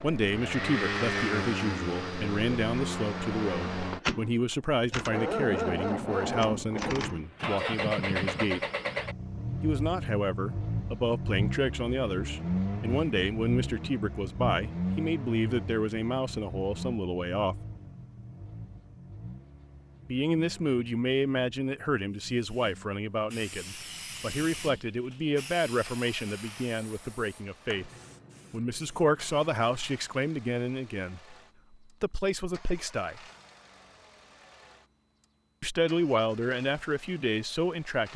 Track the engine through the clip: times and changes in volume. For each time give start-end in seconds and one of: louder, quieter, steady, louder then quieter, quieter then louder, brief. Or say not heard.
0.0-38.1 quieter.